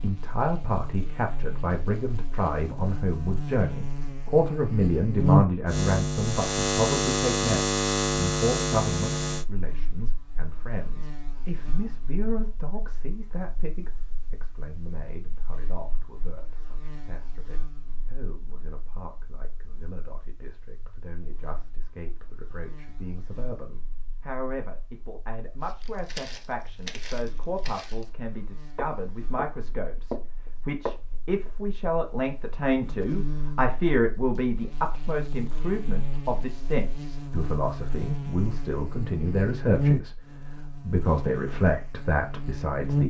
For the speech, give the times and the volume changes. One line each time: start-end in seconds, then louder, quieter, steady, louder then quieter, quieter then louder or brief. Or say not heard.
0.0-43.0 quieter then louder.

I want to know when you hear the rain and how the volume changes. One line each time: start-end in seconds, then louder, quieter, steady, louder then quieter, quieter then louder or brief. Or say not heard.
not heard.